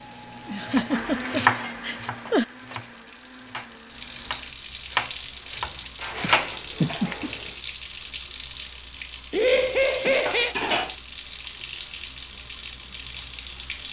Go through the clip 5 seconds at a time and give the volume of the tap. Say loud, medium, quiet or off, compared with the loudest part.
medium, loud, loud.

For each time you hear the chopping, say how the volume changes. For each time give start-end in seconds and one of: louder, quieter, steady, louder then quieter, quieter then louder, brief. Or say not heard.
0.7-7.2 quieter then louder.